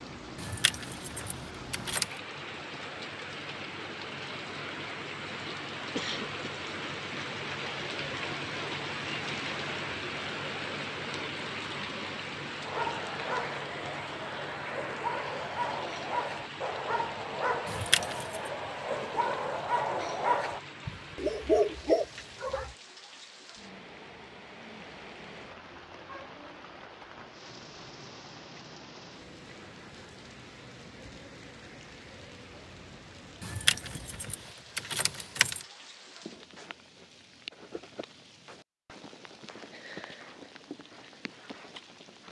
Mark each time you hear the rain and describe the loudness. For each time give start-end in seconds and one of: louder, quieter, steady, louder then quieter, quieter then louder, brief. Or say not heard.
0.0-42.2 quieter.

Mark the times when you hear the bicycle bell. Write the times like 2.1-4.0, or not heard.
not heard.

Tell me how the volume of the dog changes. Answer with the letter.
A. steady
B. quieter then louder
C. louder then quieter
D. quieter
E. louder
E.